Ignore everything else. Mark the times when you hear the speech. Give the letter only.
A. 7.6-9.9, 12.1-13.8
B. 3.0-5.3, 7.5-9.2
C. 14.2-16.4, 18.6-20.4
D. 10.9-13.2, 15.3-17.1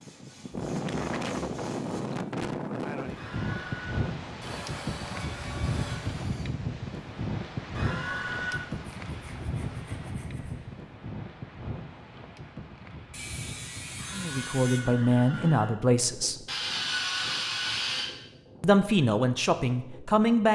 C.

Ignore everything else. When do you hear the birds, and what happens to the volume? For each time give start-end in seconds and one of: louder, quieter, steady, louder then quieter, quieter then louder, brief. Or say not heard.
not heard.